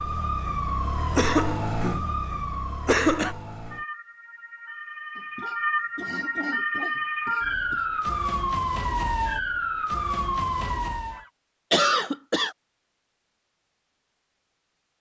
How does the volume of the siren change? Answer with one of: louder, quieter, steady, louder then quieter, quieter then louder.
quieter then louder.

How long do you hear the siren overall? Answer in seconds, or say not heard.
11 s.